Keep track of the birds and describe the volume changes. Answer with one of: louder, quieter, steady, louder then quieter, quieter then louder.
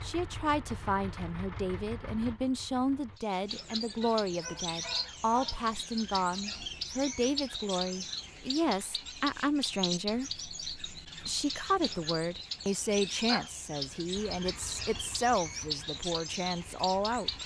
steady.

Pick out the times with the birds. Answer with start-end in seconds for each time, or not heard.
3.1-17.4.